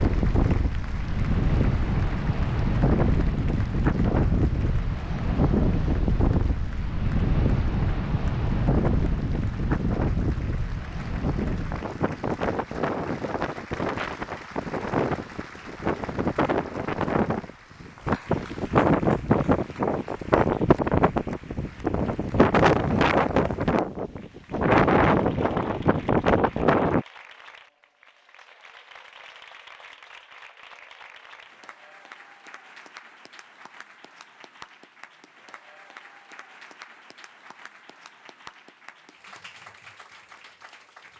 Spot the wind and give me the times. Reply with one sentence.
The wind can be heard from 0.0 to 27.1 s.